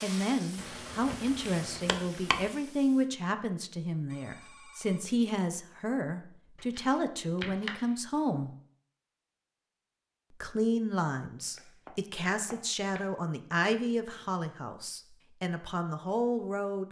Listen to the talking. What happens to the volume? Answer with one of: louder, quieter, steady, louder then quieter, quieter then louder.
steady.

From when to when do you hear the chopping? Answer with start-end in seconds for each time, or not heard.
0.6-2.5, 6.5-8.0, 11.3-13.3.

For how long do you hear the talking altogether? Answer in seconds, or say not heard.
15 s.